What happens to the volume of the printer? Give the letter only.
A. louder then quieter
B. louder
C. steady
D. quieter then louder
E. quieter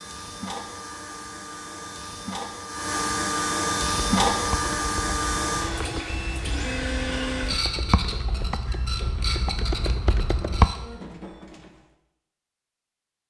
A.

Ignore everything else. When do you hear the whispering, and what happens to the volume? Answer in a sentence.
You can't hear the whispering here.